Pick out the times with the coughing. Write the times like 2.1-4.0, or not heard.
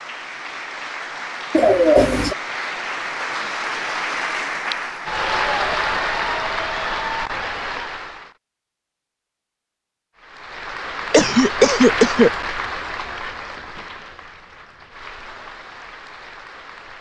1.5-2.4, 11.1-12.3.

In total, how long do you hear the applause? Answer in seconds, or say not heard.
15 s.